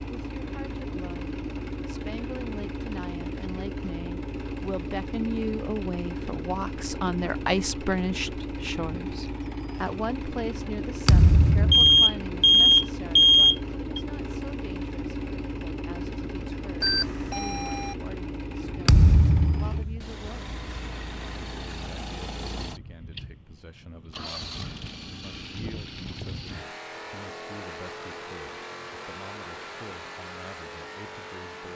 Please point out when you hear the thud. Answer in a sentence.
The thud can be heard from 11.1 to 12.1 s and from 18.9 to 20.1 s.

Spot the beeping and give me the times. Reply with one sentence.
You can hear the beeping from 11.7 to 14.0 s and from 16.8 to 17.9 s.